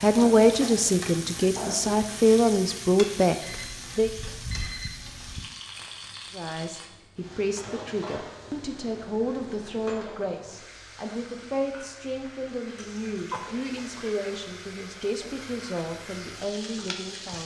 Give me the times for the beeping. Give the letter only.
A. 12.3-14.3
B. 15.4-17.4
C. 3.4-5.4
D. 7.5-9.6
C.